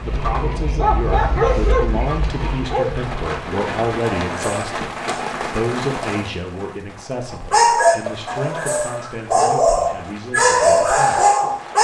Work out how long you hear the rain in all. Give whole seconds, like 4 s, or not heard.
12 s.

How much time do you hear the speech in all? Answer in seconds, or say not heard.
11 s.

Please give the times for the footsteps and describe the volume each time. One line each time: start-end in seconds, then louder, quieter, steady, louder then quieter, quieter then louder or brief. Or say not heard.
not heard.